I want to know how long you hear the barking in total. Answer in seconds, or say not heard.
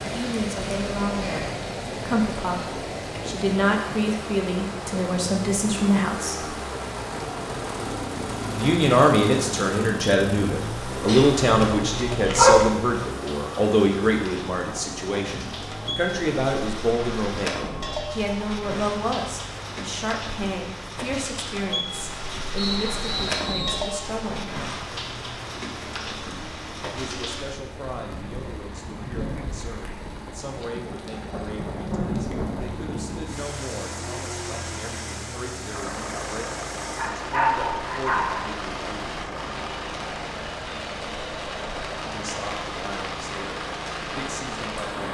3 s.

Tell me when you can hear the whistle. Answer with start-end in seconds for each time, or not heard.
22.6-23.9.